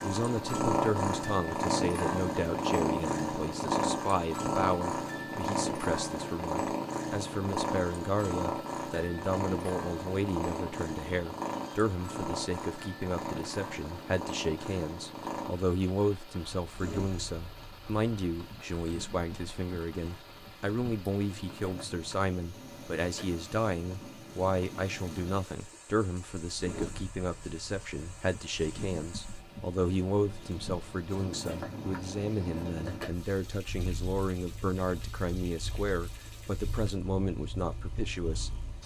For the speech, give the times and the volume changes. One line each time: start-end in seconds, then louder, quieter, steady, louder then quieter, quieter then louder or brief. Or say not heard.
0.0-38.8 steady.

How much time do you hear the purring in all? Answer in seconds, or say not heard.
39 s.